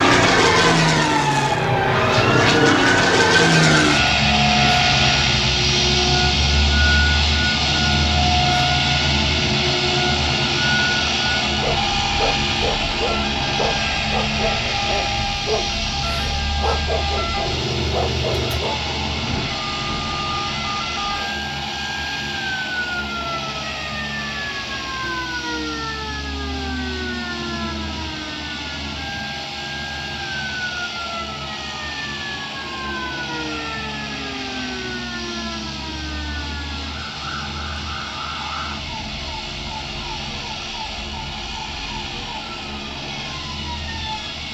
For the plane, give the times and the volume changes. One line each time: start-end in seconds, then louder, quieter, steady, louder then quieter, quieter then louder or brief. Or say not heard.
0.0-44.4 quieter.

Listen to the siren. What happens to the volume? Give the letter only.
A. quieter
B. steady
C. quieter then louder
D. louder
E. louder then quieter
A.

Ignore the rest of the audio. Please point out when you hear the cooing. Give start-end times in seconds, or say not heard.
not heard.